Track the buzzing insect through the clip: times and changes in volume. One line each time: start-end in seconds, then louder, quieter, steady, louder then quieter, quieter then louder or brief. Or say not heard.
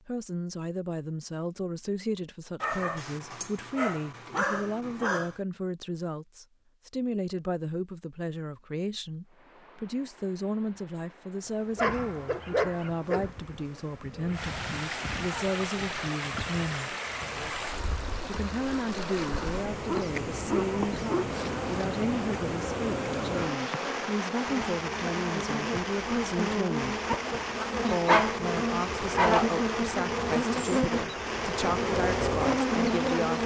11.3-33.4 louder.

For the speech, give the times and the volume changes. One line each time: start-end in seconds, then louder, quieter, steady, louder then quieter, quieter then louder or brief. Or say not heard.
0.1-16.9 steady
18.2-27.0 steady
27.9-33.4 steady.